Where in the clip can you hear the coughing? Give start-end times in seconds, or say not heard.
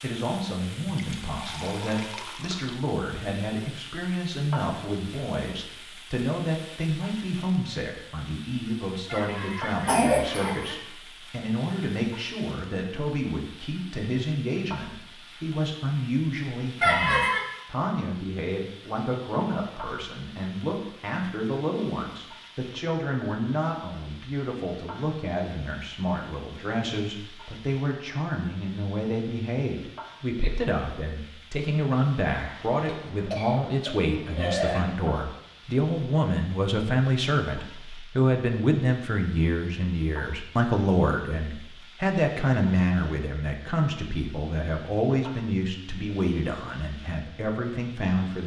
9.1-10.8, 16.8-17.4, 32.4-34.9.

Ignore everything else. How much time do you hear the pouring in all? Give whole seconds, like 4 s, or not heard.
2 s.